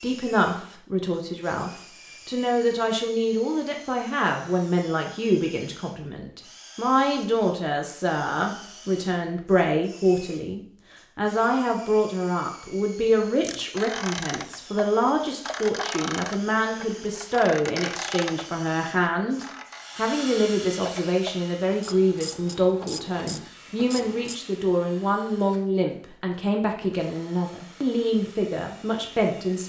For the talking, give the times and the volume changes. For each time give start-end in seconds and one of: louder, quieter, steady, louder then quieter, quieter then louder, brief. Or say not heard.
0.0-29.6 steady.